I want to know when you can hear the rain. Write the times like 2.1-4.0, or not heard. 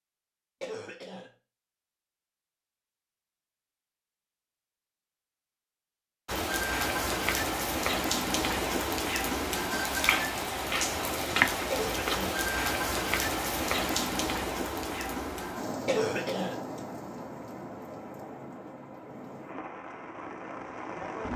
6.2-21.3.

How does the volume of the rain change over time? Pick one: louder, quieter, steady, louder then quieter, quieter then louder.
quieter.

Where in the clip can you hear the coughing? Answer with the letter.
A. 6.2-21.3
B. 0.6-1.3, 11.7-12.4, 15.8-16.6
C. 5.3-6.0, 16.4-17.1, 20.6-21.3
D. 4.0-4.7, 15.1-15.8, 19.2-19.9
B.